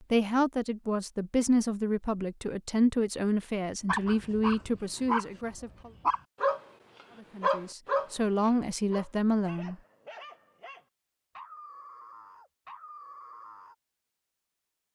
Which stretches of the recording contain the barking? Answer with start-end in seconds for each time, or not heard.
3.9-13.8.